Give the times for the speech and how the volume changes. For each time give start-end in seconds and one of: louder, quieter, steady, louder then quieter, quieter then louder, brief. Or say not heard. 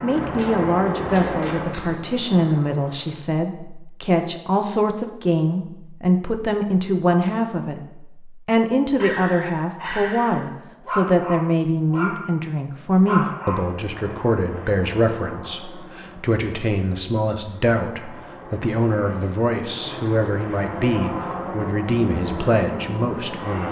0.0-23.6 steady.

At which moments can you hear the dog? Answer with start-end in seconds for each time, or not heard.
8.9-12.2, 12.8-13.7.